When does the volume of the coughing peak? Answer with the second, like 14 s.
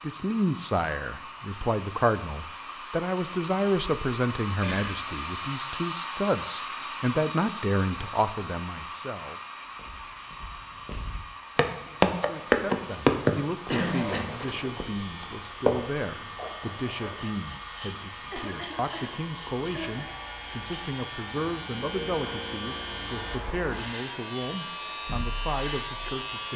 14 s.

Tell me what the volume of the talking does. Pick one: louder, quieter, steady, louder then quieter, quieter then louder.
quieter.